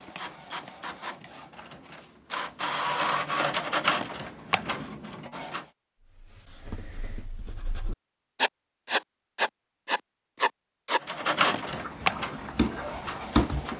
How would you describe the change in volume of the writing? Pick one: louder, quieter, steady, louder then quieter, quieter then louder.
louder then quieter.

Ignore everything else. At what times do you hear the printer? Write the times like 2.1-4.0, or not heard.
0.0-5.7, 11.0-13.7.